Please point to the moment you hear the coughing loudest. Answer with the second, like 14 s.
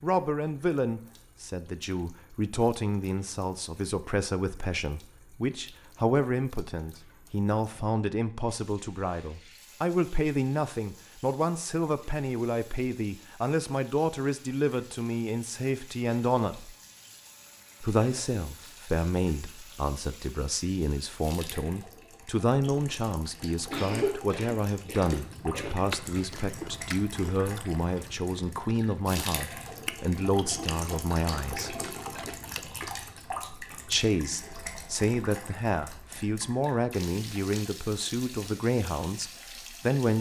24 s.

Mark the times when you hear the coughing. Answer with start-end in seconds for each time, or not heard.
23.7-25.7.